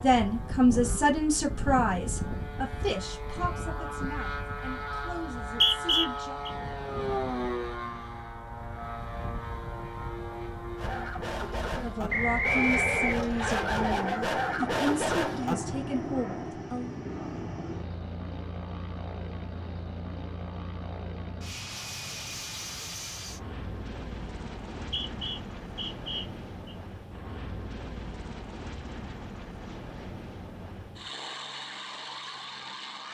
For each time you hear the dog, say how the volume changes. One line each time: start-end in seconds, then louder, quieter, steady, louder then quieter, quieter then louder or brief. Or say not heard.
10.8-15.6 louder.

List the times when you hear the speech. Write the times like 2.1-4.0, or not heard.
0.0-6.4, 11.7-16.9.